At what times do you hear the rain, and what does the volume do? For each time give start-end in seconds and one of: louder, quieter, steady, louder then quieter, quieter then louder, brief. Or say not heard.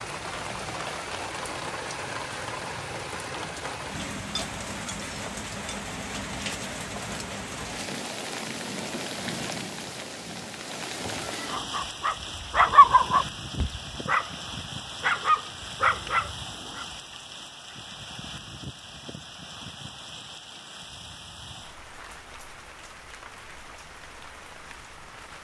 0.0-25.3 quieter.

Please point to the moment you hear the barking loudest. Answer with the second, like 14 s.
13 s.